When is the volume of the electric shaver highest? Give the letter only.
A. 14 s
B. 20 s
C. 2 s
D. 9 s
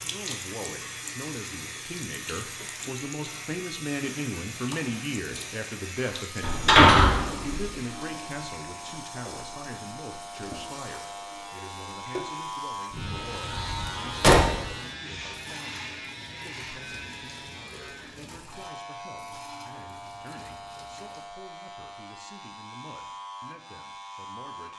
A.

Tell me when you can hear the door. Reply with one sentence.
You can hear the door from 6.4 to 7.6 s and from 12.9 to 14.7 s.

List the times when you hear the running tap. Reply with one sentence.
You can hear the running tap from 0.0 to 21.4 s.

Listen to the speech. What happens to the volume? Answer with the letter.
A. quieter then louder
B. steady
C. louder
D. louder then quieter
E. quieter
E.